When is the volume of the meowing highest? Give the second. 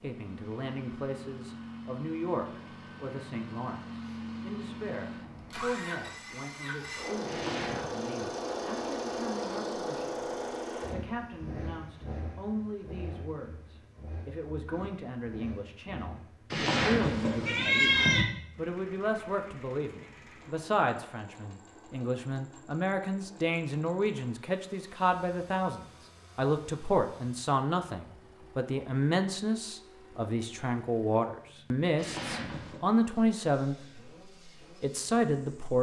18 s.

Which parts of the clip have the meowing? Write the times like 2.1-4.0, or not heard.
7.2-7.9, 16.5-18.2, 31.9-32.8.